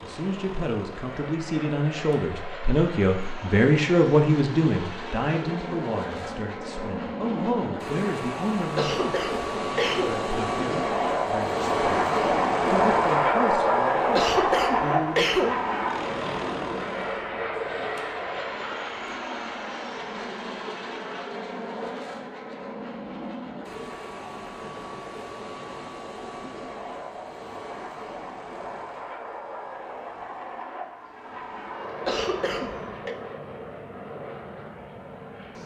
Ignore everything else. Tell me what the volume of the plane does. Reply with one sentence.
The volume of the plane goes up, then down.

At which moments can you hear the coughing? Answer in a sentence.
The coughing can be heard from 8.8 to 10.2 s, from 14.1 to 15.6 s and from 32.0 to 33.1 s.